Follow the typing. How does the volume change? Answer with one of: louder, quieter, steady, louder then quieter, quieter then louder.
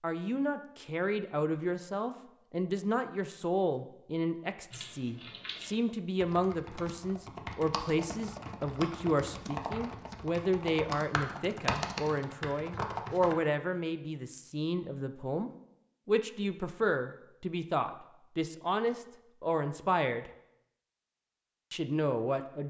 louder.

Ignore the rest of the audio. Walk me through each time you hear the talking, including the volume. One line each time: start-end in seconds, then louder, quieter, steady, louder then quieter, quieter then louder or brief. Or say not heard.
0.0-20.3 steady
21.7-22.6 brief.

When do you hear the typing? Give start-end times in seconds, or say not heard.
4.7-13.3.